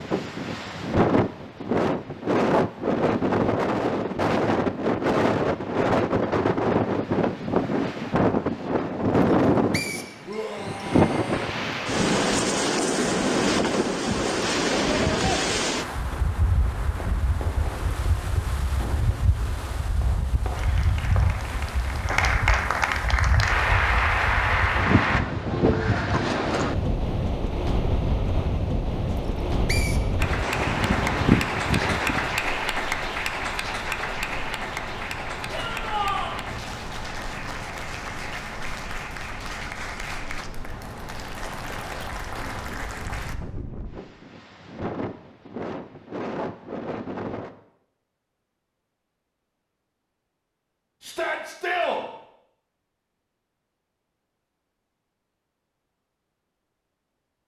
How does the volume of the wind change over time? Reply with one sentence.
The volume of the wind goes down.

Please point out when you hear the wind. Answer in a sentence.
You can hear the wind from 0.0 to 47.5 s.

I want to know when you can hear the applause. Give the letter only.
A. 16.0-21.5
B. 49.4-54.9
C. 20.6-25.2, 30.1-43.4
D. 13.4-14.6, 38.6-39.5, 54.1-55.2
C.